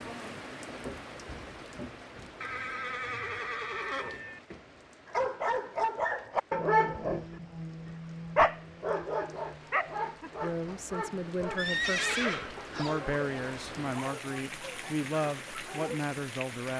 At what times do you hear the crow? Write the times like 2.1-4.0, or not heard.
not heard.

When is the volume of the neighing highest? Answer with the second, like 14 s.
12 s.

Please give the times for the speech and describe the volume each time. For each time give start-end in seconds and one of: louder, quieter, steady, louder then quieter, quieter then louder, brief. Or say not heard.
10.4-16.7 steady.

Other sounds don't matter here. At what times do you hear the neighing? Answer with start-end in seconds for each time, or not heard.
2.4-4.4, 11.6-13.0.